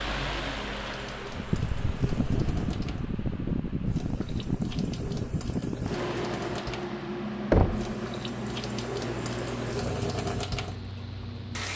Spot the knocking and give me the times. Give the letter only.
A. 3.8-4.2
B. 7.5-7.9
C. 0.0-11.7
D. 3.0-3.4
B.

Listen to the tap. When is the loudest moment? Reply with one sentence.
The loudest moment of the tap is at 10 seconds.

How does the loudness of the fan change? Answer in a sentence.
The volume of the fan goes down.